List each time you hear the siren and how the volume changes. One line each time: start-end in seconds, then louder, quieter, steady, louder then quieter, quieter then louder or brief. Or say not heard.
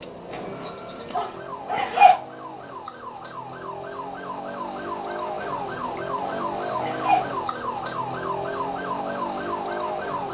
0.0-10.2 louder.